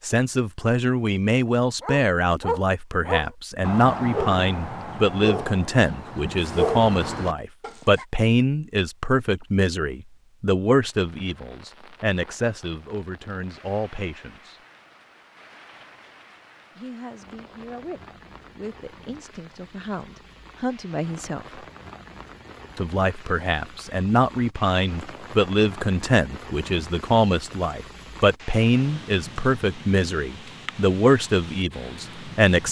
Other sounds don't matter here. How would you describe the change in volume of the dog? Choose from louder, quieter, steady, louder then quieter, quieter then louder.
quieter then louder.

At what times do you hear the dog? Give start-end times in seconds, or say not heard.
1.8-8.1.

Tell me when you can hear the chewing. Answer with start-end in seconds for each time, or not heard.
not heard.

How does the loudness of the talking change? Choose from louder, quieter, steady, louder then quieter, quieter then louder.
quieter then louder.